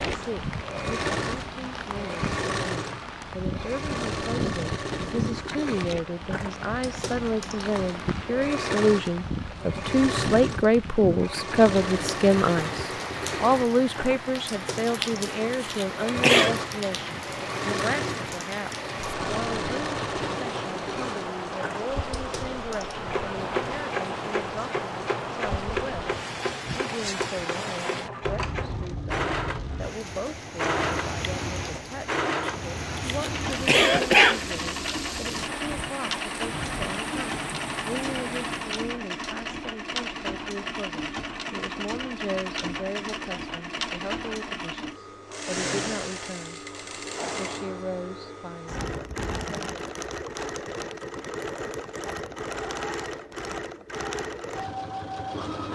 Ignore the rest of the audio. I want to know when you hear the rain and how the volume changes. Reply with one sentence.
The rain can be heard from 0.0 to 38.9 s, at a steady volume.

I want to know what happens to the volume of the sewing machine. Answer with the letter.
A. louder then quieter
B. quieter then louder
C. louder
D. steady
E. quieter
D.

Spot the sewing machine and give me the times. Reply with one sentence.
You can hear the sewing machine from 0.0 to 55.7 s.